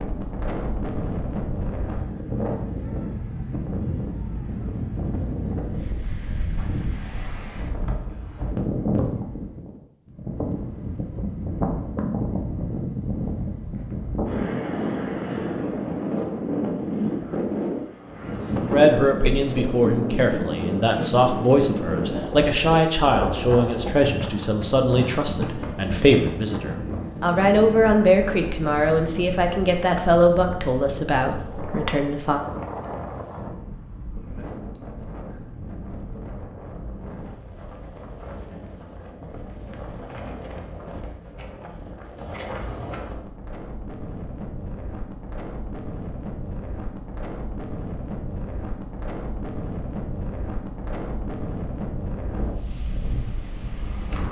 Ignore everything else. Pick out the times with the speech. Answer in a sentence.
The speech can be heard from 18.7 to 32.4 s.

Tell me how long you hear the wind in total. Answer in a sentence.
You can hear the wind for 54 seconds altogether.